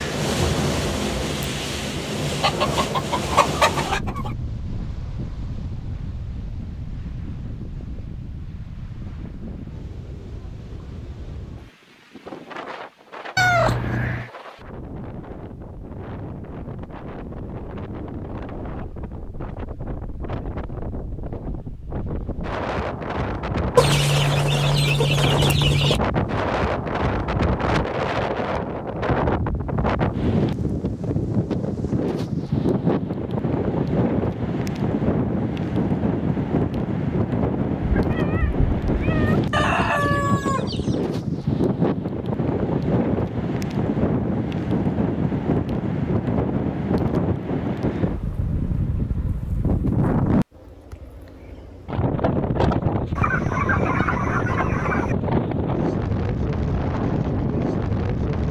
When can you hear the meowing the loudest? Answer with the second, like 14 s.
14 s.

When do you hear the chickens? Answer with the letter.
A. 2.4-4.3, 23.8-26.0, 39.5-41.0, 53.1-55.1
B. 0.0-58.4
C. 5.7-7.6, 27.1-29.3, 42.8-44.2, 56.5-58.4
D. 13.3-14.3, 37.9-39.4
A.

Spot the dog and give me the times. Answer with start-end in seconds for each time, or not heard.
not heard.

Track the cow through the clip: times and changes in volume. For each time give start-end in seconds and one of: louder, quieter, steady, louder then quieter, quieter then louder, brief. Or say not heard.
not heard.